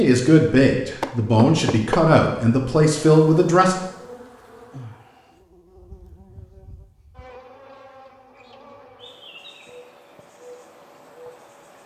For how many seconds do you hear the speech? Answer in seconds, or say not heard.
4 s.